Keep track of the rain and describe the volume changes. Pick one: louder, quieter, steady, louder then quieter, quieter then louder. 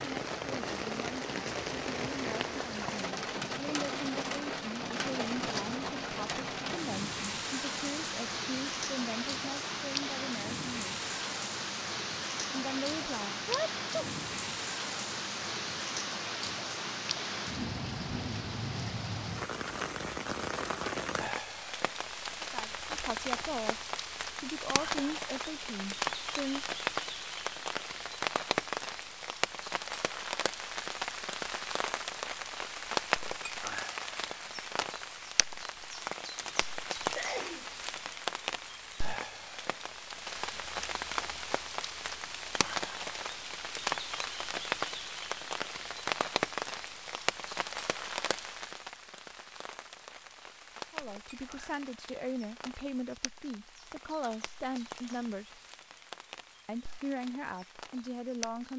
quieter.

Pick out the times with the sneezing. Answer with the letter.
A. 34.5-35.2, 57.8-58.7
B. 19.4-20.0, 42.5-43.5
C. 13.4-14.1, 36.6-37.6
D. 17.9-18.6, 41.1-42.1
C.